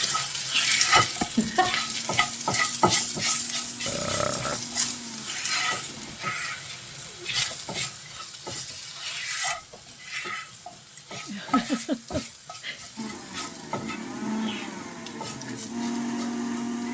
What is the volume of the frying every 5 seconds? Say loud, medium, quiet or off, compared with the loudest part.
loud, medium, quiet, quiet.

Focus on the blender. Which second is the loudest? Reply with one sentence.
The loudest moment of the blender is at 16 seconds.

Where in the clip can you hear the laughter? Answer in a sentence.
You can hear the laughter from 1.0 to 1.8 s and from 11.2 to 12.8 s.